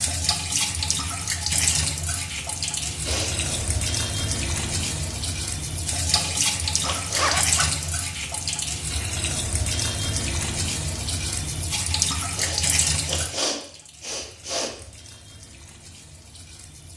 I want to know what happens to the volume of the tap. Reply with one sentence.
The loudness of the tap goes down.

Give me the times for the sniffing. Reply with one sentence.
You can hear the sniffing from 3.0 to 3.5 s, from 6.1 to 8.0 s and from 12.3 to 14.7 s.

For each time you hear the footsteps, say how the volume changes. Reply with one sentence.
The footsteps can't be heard in this clip.